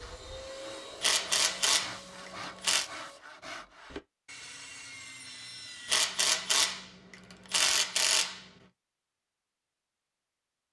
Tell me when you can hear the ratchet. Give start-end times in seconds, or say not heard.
1.0-2.9, 5.8-8.4.